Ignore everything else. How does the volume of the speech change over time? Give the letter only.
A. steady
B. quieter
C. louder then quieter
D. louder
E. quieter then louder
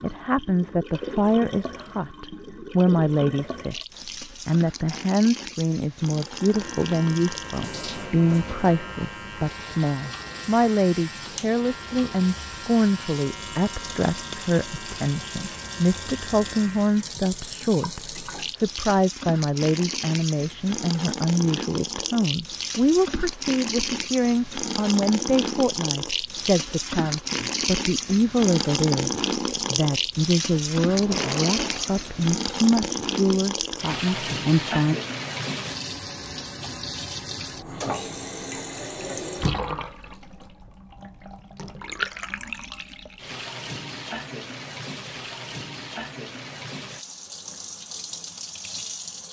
A.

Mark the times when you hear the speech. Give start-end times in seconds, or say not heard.
0.0-35.0.